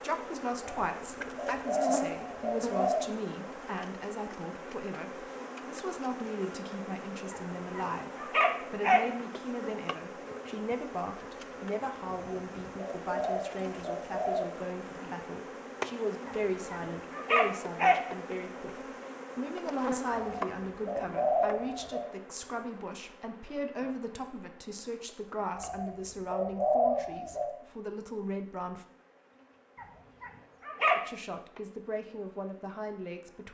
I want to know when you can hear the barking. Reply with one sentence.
You can hear the barking from 7.3 to 9.1 s, from 16.2 to 18.0 s and from 29.8 to 31.0 s.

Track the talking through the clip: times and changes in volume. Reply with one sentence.
You can hear the talking from 0.0 to 28.9 s, at a steady volume; and briefly from 30.9 to 33.4 s.